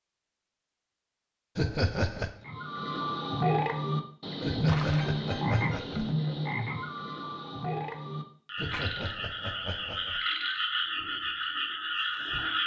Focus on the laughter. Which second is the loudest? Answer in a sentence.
The loudest moment of the laughter is at 2 seconds.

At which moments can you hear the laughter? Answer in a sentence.
The laughter can be heard from 1.6 to 2.4 s, from 4.4 to 6.2 s and from 8.6 to 10.2 s.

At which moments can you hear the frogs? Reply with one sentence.
You can hear the frogs from 2.4 to 12.6 s.